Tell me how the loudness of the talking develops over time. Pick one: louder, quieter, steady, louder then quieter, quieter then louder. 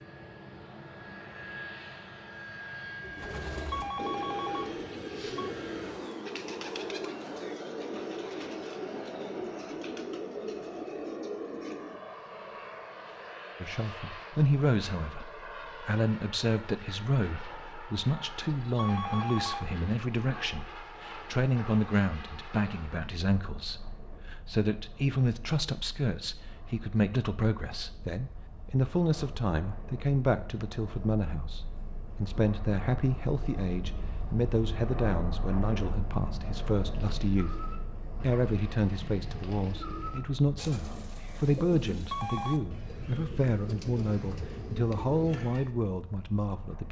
steady.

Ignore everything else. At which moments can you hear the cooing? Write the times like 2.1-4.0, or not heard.
3.0-12.0, 36.9-45.7.